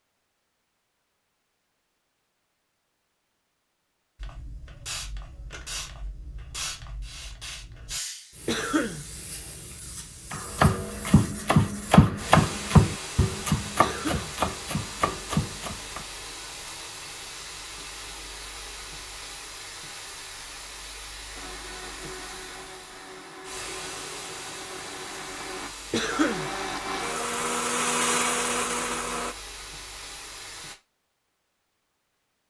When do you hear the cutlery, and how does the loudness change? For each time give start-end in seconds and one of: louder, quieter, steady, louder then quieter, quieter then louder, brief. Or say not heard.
not heard.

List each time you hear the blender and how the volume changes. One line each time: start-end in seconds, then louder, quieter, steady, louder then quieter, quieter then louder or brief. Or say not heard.
21.3-29.4 louder.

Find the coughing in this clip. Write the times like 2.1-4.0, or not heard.
8.4-9.0, 13.8-14.3, 25.9-26.5.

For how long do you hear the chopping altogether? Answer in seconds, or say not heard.
6 s.